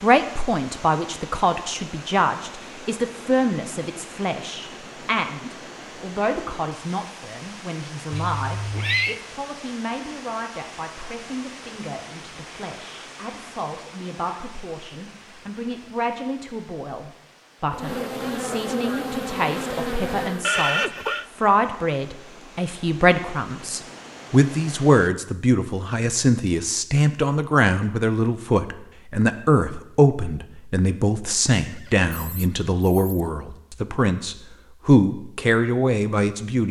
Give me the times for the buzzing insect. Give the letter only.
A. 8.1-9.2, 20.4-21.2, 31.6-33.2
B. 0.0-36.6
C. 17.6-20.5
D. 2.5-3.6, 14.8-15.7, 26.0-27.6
C.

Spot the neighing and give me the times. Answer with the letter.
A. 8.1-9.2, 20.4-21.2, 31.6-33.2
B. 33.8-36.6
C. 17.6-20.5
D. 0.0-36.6
A.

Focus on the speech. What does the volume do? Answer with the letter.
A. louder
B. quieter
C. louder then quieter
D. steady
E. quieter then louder
E.